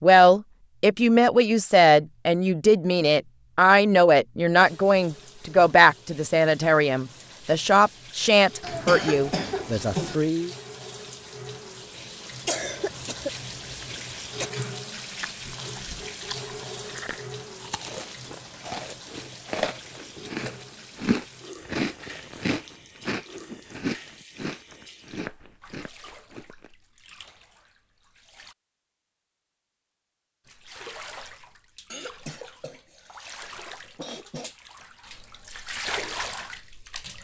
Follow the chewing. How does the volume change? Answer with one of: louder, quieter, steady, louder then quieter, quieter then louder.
louder then quieter.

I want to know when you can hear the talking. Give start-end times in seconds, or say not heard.
0.0-10.5.